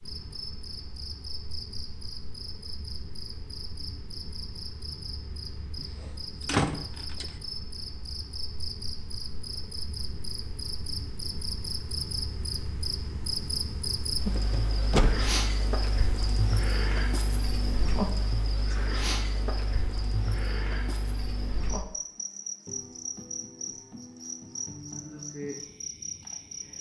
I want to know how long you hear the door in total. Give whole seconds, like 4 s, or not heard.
2 s.